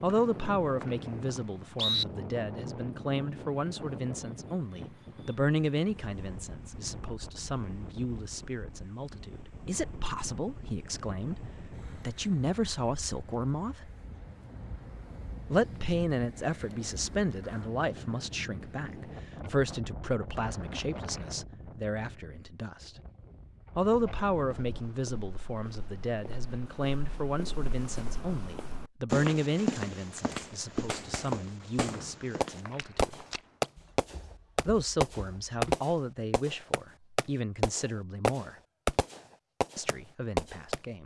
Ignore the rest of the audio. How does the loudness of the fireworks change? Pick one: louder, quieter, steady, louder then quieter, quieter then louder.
louder.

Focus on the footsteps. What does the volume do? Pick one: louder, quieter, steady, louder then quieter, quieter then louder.
louder then quieter.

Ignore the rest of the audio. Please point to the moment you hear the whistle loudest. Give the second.
2 s.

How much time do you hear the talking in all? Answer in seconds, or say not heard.
36 s.